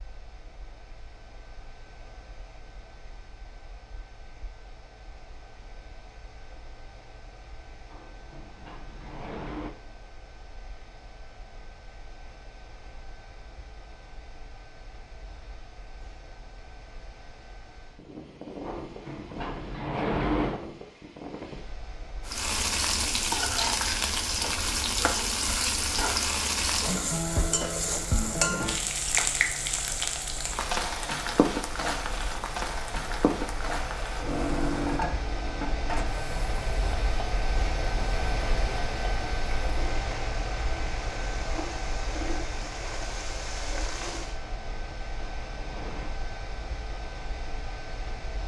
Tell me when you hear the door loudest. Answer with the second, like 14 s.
20 s.